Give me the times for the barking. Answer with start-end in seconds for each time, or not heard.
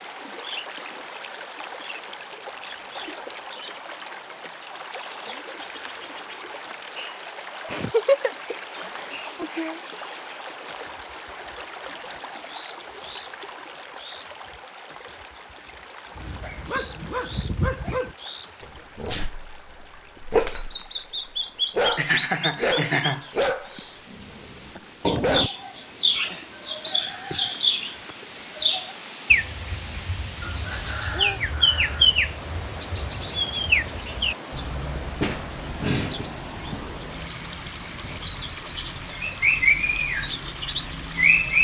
16.1-25.4.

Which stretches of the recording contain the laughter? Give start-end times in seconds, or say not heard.
7.6-9.8, 21.6-23.5.